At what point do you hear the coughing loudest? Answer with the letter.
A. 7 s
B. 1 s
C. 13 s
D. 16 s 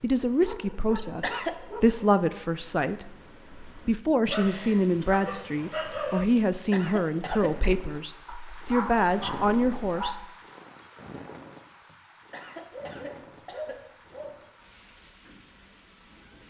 B.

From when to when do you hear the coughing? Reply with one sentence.
You can hear the coughing from 0.8 to 1.6 s, from 6.2 to 7.5 s and from 11.8 to 13.8 s.